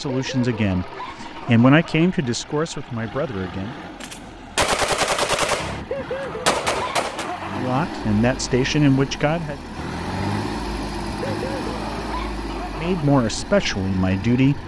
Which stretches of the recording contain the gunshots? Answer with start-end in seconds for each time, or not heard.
4.0-7.3.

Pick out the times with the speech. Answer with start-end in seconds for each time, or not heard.
0.0-3.8, 7.5-9.6, 12.8-14.6.